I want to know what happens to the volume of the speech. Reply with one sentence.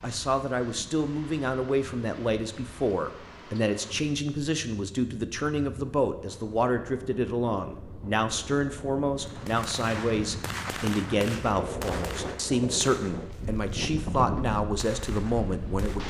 The volume of the speech stays about the same.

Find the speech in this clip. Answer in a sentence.
The speech can be heard from 0.0 to 16.0 s.